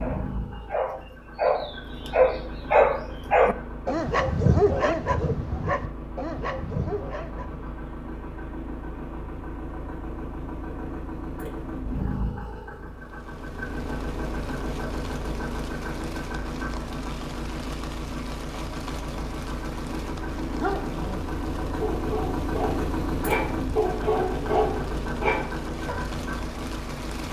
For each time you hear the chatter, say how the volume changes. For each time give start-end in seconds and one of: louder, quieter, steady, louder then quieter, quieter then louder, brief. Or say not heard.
not heard.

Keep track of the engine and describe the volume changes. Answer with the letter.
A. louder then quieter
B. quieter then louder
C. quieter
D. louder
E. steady
D.